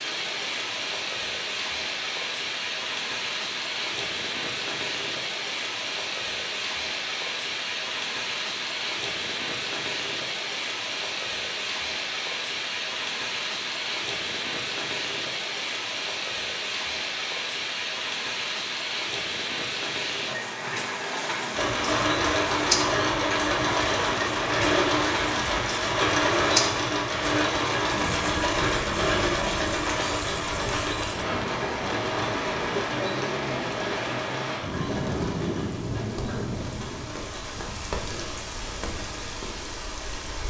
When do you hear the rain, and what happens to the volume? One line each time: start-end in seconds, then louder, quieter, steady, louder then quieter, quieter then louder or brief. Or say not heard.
0.0-40.4 steady.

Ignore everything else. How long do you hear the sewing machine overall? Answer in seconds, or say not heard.
19 s.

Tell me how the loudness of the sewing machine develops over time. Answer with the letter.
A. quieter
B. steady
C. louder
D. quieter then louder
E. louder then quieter
A.